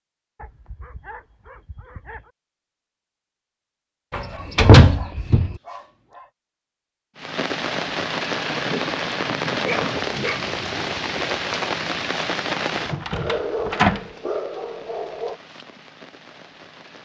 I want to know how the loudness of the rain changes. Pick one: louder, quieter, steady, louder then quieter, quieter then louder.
quieter.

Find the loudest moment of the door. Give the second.
5 s.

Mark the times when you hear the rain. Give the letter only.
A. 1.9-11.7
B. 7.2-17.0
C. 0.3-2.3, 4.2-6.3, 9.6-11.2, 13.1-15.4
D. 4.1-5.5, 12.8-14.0
B.